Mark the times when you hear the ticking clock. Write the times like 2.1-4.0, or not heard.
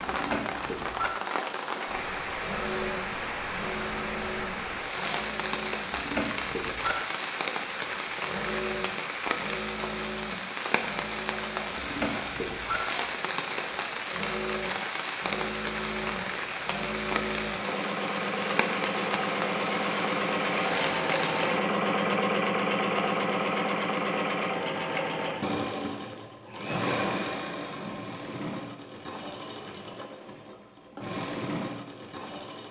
not heard.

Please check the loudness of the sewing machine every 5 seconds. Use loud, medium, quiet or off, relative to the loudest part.
medium, medium, medium, medium, loud, medium, medium.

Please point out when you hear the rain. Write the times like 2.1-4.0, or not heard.
0.0-21.6.